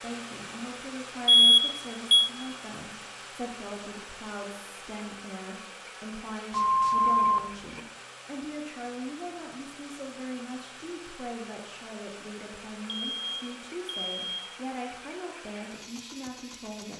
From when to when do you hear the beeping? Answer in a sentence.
The beeping can be heard from 1.4 to 2.3 s, from 6.5 to 7.8 s and from 12.8 to 14.6 s.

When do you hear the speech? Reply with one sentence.
You can hear the speech from 0.0 to 16.9 s.